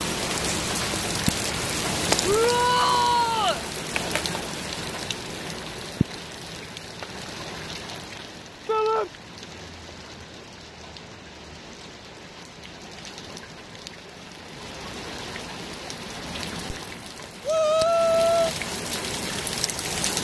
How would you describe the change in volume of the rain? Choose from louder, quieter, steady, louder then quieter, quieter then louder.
quieter then louder.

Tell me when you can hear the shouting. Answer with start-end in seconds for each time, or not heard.
2.2-3.6, 8.7-9.1, 17.4-18.6.